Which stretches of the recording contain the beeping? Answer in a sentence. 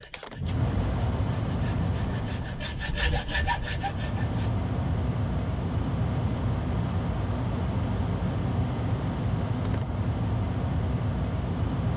The beeping can't be heard in this clip.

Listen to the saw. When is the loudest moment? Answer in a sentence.
The loudest moment of the saw is at 3 seconds.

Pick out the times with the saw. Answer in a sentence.
You can hear the saw from 0.0 to 4.5 s.